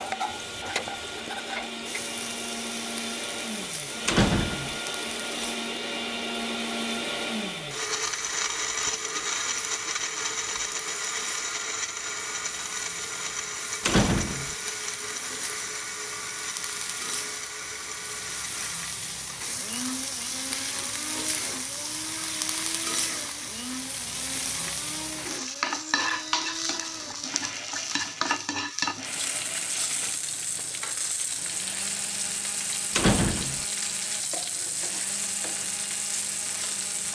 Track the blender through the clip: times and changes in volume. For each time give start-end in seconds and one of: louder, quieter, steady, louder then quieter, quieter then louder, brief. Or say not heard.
0.0-37.0 quieter.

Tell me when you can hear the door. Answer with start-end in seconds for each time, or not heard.
4.0-4.8, 13.8-14.6, 33.0-33.6.